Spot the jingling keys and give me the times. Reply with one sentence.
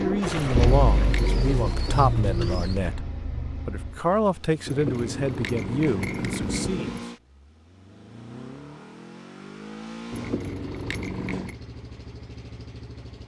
The jingling keys can be heard from 0.3 to 1.4 s, from 4.7 to 7.0 s and from 10.1 to 11.6 s.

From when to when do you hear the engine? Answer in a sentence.
The engine can be heard from 0.0 to 13.2 s.